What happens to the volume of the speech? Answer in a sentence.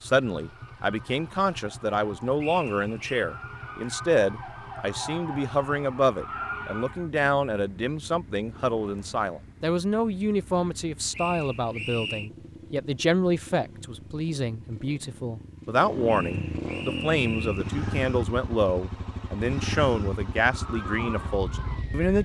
The loudness of the speech stays about the same.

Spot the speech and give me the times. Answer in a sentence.
You can hear the speech from 0.0 to 22.1 s.